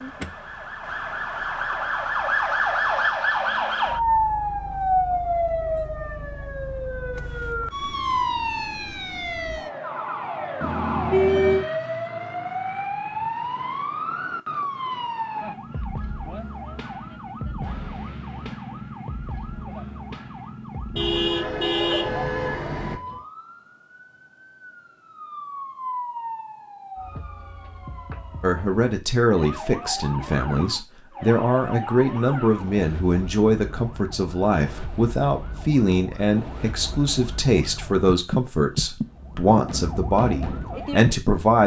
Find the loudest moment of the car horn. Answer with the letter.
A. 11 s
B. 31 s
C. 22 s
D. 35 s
A.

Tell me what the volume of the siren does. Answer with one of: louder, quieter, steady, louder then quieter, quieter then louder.
quieter.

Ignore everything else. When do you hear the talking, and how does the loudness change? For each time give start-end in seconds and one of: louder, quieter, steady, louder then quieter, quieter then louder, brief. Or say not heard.
28.4-41.6 steady.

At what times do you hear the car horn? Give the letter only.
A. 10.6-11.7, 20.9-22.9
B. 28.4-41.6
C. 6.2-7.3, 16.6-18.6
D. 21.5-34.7
A.